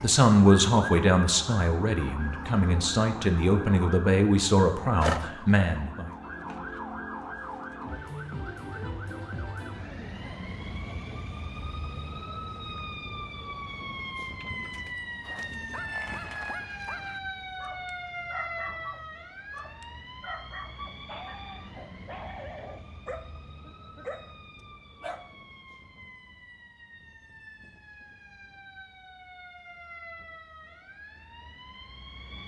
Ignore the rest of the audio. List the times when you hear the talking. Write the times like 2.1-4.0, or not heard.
0.0-6.1.